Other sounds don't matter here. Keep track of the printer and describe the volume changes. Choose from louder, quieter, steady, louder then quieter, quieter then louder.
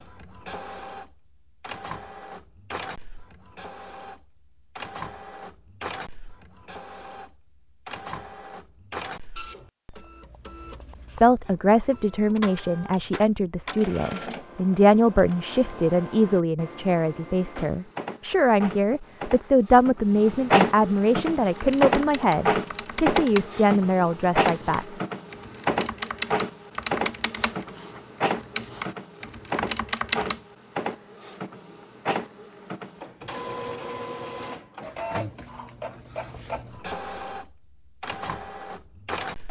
louder then quieter.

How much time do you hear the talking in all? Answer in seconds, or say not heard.
14 s.